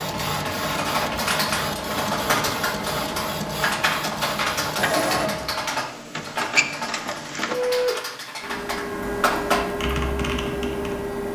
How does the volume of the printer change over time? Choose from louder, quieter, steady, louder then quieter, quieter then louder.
steady.